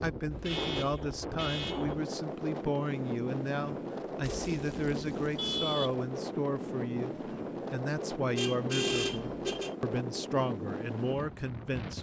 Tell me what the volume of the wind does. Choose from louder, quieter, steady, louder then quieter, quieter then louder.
steady.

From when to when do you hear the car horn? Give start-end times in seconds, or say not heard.
0.3-1.9, 4.2-6.0, 8.3-9.8.